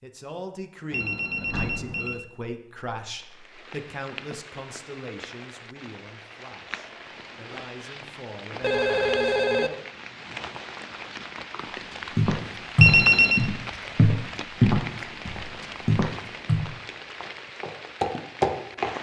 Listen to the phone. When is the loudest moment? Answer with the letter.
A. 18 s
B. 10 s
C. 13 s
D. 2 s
C.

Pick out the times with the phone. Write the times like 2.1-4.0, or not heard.
0.9-2.2, 8.6-9.7, 12.8-13.5.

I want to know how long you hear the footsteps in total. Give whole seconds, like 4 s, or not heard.
7 s.